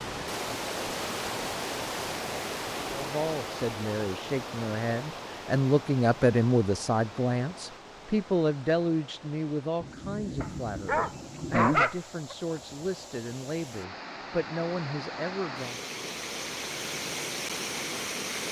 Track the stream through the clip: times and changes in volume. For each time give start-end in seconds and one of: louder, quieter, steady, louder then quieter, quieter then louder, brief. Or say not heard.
0.0-18.4 quieter then louder.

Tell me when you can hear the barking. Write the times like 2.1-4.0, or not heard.
10.4-12.3.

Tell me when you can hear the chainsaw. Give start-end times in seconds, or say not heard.
not heard.